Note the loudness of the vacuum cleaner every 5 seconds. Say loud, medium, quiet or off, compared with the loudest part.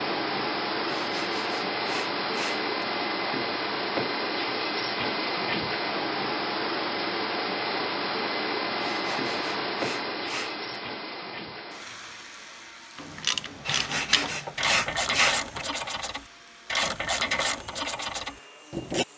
loud, loud, medium, quiet.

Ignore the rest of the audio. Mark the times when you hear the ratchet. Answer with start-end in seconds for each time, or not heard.
12.9-19.1.